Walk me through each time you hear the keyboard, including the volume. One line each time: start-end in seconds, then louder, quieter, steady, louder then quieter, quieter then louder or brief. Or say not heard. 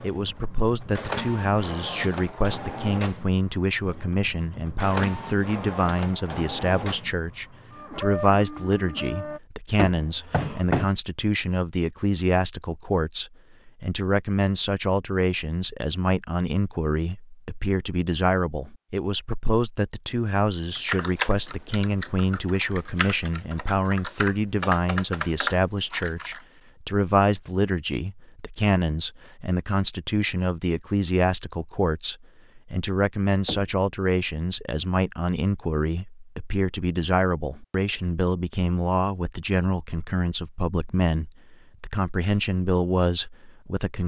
20.8-26.4 quieter then louder.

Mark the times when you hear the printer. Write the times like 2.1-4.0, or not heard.
0.0-9.4.